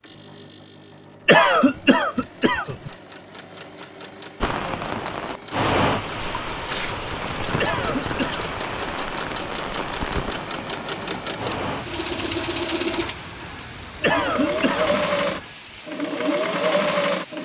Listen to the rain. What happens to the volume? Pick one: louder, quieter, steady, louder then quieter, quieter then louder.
quieter.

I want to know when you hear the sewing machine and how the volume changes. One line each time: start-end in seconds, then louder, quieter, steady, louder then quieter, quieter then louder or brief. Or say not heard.
0.0-17.3 louder.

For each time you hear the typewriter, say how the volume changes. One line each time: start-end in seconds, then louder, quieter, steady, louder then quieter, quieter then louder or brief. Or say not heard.
not heard.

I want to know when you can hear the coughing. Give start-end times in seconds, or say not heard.
1.2-2.9, 7.5-8.5, 14.0-14.9.